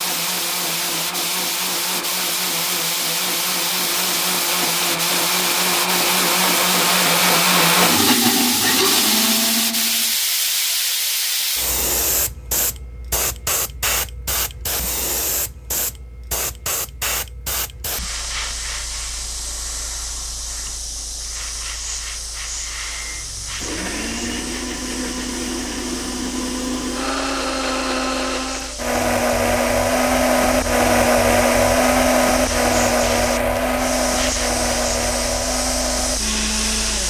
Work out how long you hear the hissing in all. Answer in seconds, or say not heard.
37 s.